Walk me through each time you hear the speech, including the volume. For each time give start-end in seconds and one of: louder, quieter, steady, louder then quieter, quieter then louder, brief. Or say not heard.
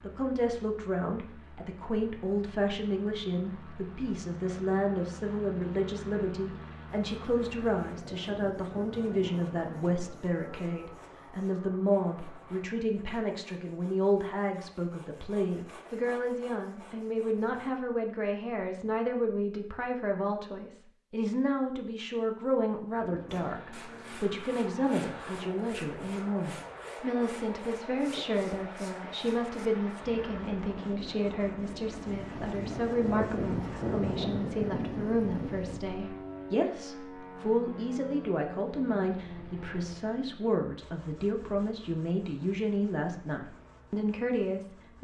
0.0-44.9 steady.